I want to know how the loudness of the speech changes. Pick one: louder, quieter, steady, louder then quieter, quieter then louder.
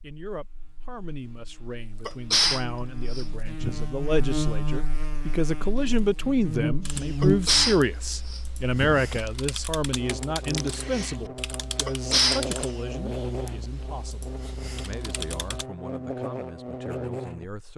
louder then quieter.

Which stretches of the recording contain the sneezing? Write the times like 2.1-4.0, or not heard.
2.0-3.8, 7.2-9.2, 11.8-12.4.